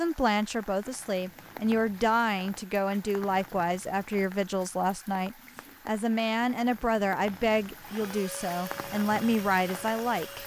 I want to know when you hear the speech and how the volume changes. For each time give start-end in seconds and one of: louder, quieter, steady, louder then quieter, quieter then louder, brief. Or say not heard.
0.0-10.4 steady.